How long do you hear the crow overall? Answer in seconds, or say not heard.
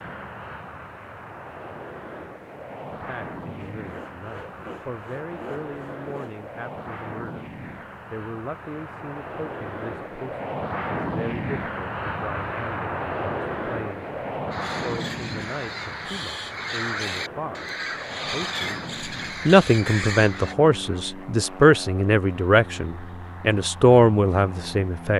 6 s.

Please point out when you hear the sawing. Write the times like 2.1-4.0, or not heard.
3.6-6.3.